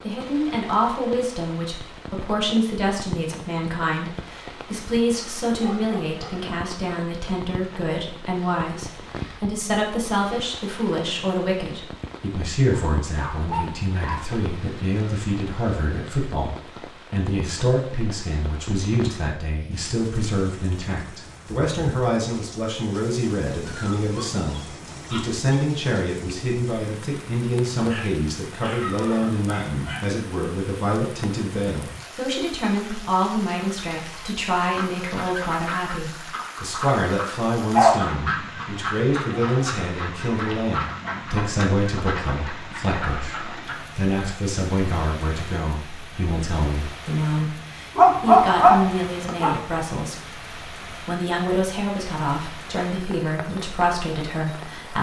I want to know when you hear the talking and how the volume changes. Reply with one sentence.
You can hear the talking from 0.0 to 54.9 s, at a steady volume.